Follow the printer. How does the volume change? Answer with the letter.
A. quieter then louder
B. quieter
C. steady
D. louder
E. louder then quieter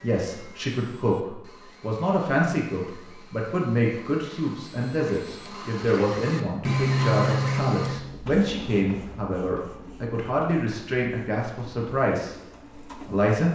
E.